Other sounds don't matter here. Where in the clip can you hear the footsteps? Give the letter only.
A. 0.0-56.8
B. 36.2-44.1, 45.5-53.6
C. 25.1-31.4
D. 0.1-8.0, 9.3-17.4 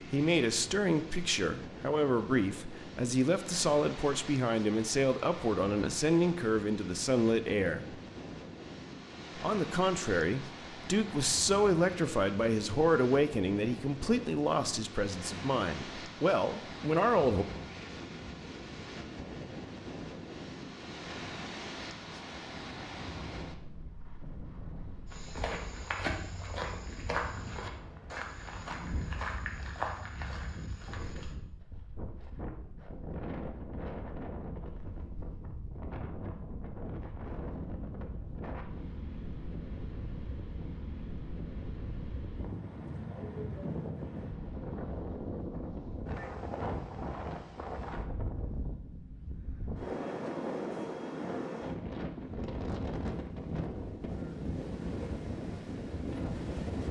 C.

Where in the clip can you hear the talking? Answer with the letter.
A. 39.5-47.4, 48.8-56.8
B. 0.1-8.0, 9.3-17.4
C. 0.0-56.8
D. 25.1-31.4
B.